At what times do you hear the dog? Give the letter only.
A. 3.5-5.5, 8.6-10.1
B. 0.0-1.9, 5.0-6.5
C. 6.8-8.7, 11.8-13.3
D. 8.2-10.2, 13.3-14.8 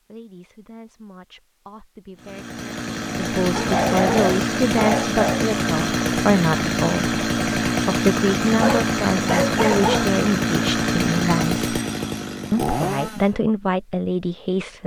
A.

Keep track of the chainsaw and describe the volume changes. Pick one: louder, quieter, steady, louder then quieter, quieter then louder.
steady.